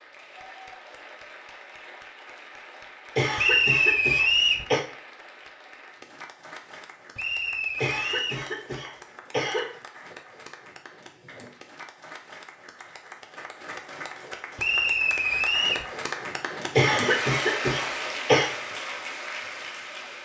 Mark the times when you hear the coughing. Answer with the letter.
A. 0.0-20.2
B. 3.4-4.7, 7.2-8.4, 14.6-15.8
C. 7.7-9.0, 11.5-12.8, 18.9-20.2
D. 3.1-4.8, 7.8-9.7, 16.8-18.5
D.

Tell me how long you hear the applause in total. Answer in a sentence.
You can hear the applause for 20 seconds altogether.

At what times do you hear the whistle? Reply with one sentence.
The whistle can be heard from 3.4 to 4.7 s, from 7.2 to 8.4 s and from 14.6 to 15.8 s.